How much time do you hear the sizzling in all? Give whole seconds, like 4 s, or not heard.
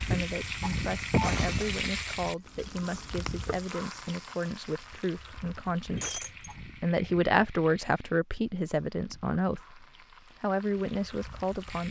12 s.